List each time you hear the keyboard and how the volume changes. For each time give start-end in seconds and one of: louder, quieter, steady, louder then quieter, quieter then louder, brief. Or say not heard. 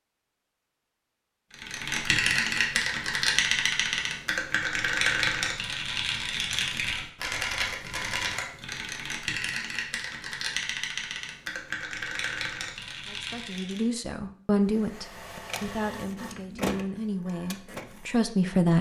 1.5-13.9 quieter.